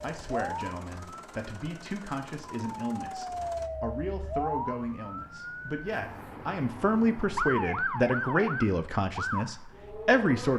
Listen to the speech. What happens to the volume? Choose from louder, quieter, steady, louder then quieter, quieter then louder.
louder.